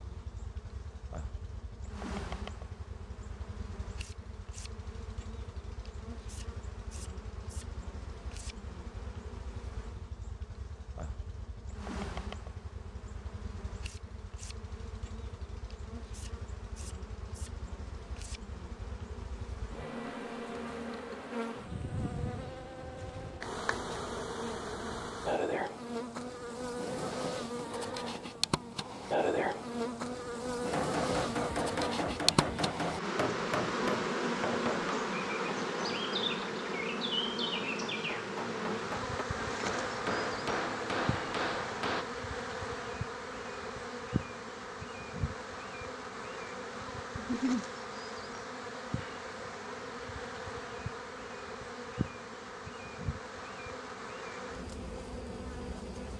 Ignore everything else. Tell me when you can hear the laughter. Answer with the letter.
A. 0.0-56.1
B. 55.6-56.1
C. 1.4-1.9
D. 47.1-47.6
D.